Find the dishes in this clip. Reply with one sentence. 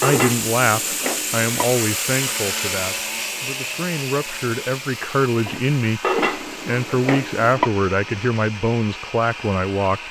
The dishes can be heard from 0.0 to 1.6 s and from 5.5 to 7.7 s.